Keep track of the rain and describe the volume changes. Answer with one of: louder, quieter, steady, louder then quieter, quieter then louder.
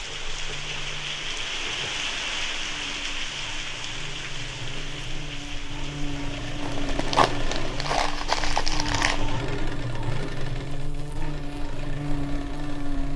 quieter.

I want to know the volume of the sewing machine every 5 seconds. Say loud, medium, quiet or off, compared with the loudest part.
medium, loud, loud.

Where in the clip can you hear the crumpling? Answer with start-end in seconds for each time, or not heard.
6.6-9.2.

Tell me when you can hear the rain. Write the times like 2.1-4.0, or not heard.
0.0-9.4.